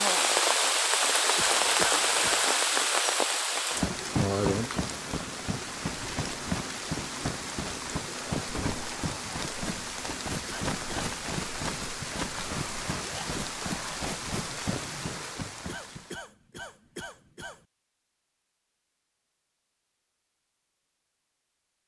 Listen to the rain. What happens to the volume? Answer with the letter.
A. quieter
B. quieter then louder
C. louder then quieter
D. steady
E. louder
A.